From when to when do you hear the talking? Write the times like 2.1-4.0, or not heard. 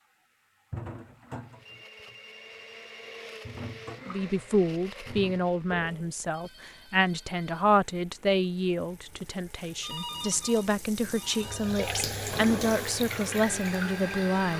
4.0-14.5.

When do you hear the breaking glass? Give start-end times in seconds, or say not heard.
not heard.